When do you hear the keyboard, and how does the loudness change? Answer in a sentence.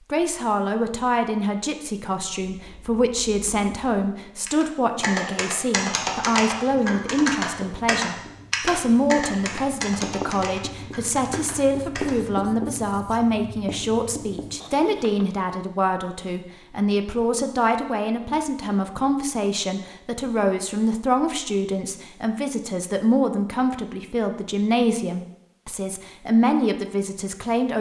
You can hear the keyboard from 2.6 to 12.2 s, getting louder then quieter.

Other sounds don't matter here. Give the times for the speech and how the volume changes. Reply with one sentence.
The speech can be heard from 0.1 to 27.7 s, at a steady volume.